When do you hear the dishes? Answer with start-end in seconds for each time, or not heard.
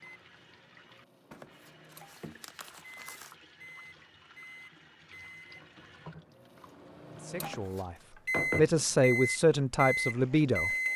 not heard.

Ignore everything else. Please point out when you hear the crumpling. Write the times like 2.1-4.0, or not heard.
1.3-3.4, 7.4-8.1.